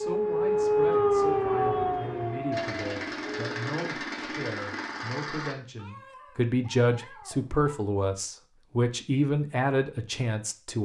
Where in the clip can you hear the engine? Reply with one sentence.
The engine can be heard from 2.5 to 5.5 s.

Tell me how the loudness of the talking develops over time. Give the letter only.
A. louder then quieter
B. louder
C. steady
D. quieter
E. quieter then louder
B.